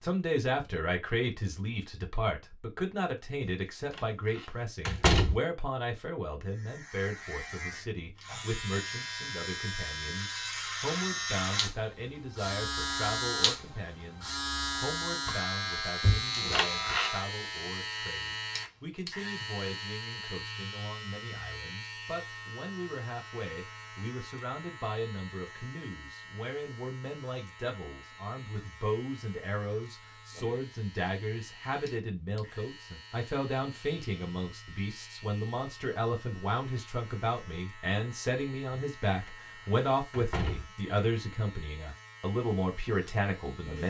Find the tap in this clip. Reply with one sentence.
The tap can't be heard in this clip.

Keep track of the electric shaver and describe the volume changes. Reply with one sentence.
The volume of the electric shaver goes down.